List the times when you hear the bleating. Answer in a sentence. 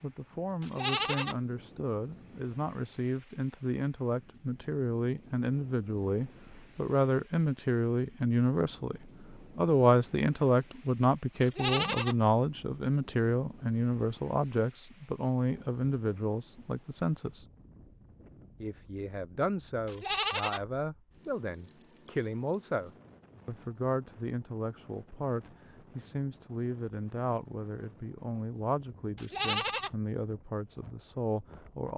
You can hear the bleating from 0.6 to 1.4 s, from 11.4 to 12.2 s, from 19.9 to 20.6 s and from 29.1 to 29.9 s.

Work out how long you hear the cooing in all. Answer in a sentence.
You can't hear the cooing here.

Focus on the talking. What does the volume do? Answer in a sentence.
The loudness of the talking goes up, then down.